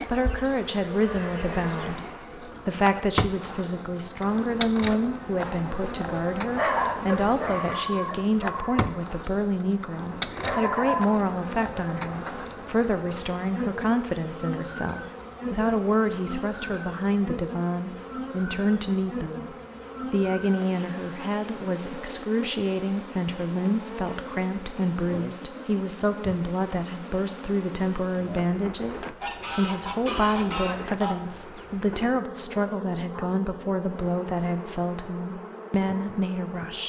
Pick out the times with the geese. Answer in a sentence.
You can hear the geese from 29.2 to 31.2 s.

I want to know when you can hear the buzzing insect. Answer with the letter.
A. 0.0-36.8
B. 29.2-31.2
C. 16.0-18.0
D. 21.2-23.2
A.